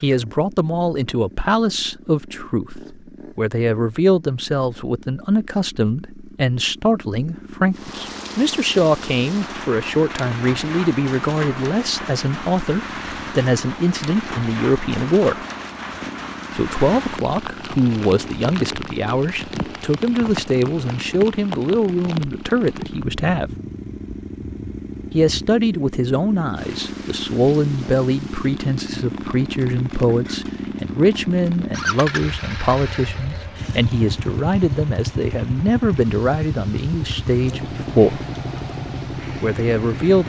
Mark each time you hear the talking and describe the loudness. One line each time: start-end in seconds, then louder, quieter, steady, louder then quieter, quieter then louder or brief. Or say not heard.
0.0-15.4 steady
16.6-23.5 steady
25.1-38.2 steady
39.4-40.2 brief.